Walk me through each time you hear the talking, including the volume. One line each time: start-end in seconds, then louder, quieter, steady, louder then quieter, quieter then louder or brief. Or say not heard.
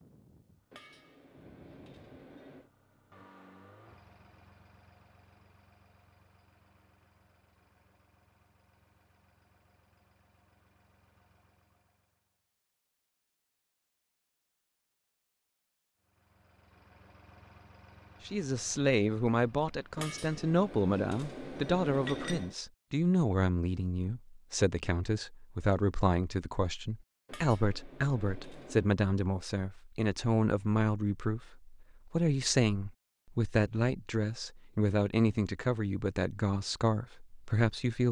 18.2-38.0 steady.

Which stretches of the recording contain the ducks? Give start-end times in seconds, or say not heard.
not heard.